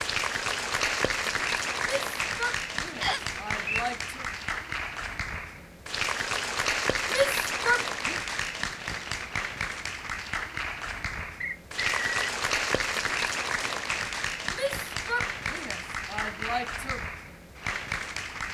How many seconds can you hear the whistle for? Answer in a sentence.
The whistle can be heard for 2 seconds in total.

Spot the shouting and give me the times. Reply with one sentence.
You can hear the shouting from 1.8 to 4.3 s, from 7.0 to 8.2 s and from 14.5 to 17.0 s.